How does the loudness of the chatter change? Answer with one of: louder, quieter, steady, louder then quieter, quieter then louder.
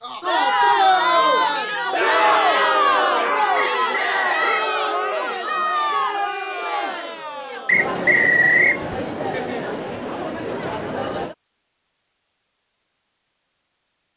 quieter.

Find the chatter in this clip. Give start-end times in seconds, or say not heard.
0.0-11.3.